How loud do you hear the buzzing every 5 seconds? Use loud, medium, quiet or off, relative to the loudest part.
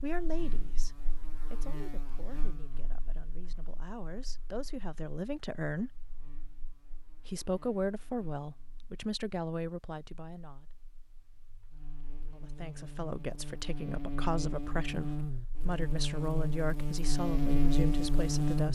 quiet, quiet, medium, loud.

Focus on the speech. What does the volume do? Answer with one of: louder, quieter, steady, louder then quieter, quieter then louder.
louder.